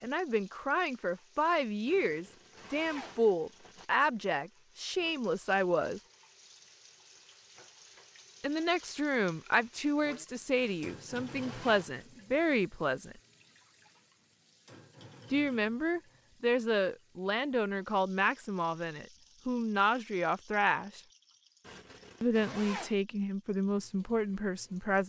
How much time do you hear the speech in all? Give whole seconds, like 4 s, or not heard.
19 s.